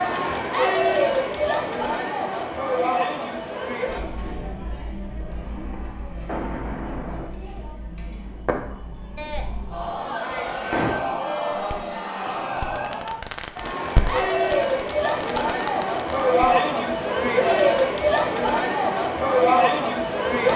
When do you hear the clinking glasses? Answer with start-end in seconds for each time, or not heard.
not heard.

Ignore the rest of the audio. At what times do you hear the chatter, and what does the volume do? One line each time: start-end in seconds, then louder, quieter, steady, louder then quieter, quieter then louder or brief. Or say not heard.
0.0-20.5 quieter then louder.